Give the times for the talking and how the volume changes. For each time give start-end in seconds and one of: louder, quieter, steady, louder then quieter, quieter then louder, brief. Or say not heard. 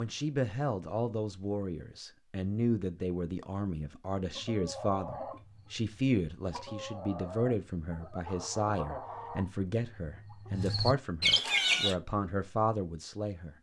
0.0-13.5 steady.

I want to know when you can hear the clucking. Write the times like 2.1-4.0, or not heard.
4.3-11.9.